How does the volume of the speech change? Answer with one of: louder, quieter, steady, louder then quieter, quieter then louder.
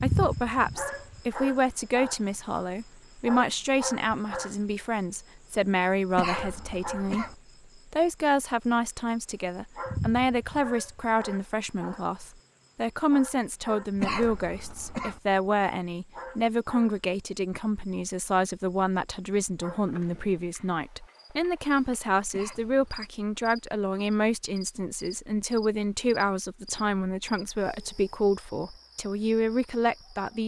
steady.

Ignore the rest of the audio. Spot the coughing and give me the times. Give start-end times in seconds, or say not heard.
6.2-7.3, 14.0-15.2, 22.3-23.1.